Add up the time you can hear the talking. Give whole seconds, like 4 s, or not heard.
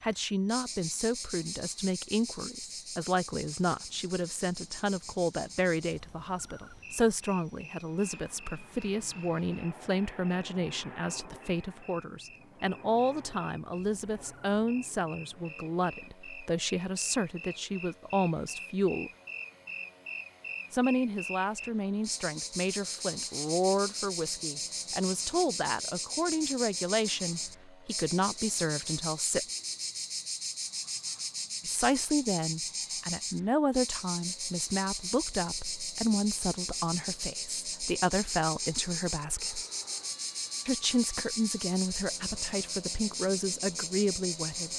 40 s.